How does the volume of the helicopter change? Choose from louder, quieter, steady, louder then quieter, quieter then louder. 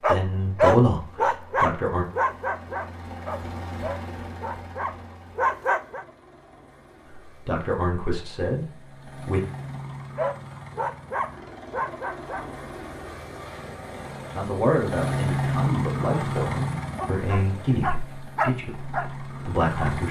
quieter then louder.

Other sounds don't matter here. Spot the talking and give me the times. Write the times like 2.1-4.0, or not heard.
0.0-2.0, 7.1-9.4, 14.3-20.0.